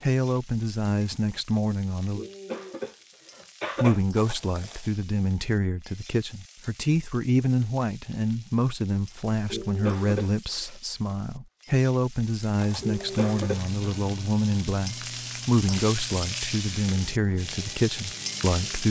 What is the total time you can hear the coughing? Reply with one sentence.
The coughing can be heard for 4 seconds in total.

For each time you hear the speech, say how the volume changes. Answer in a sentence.
The speech can be heard briefly from 0.0 to 2.2 s; and from 3.8 to 18.8 s, at a steady volume.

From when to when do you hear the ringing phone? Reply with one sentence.
The ringing phone can't be heard in this clip.